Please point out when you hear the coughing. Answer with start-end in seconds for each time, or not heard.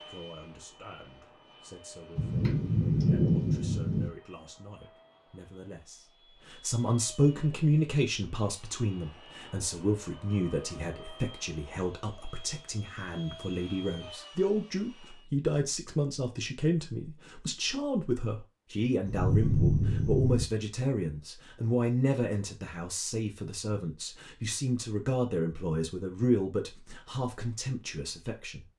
not heard.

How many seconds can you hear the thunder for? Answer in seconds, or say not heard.
3 s.